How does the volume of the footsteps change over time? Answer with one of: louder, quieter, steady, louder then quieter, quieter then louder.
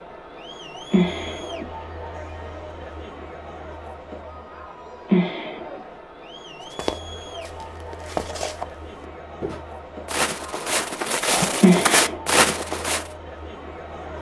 louder.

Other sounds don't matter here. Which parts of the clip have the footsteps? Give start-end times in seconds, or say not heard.
6.6-13.1.